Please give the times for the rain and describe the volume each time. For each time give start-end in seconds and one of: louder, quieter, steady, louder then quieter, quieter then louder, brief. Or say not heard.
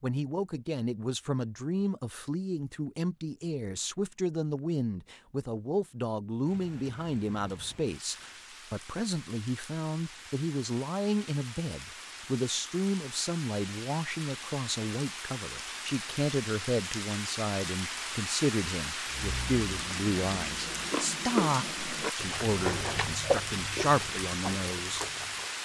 6.4-25.5 louder.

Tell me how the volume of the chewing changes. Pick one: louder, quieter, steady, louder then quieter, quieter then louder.
louder then quieter.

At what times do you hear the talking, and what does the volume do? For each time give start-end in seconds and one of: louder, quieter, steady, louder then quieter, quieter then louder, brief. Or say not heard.
0.0-25.1 steady.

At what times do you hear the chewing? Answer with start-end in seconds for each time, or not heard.
19.1-25.5.